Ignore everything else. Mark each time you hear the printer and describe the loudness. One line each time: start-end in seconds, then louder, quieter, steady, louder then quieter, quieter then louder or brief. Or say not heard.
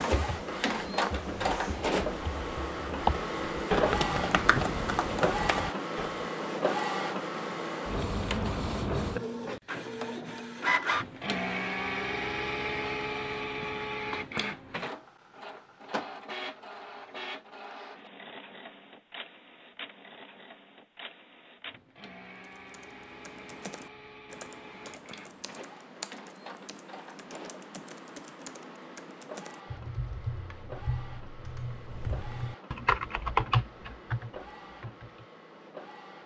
0.0-36.2 quieter.